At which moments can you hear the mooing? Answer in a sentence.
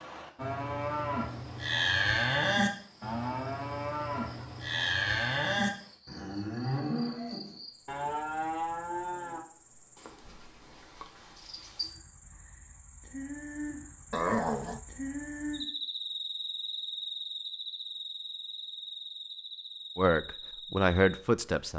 You can hear the mooing from 0.3 to 9.4 s.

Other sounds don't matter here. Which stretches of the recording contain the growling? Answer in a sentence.
The growling can be heard from 14.1 to 14.8 s.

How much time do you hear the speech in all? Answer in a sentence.
The speech can be heard for 2 seconds in total.